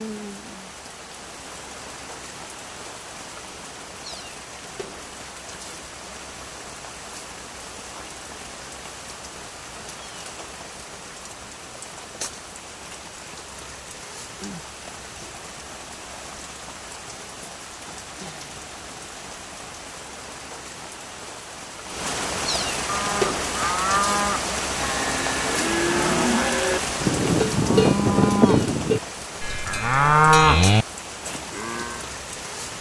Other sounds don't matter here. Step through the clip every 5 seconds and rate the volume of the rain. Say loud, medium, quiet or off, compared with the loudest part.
medium, medium, medium, medium, loud, loud, medium.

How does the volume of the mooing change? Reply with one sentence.
The volume of the mooing goes up.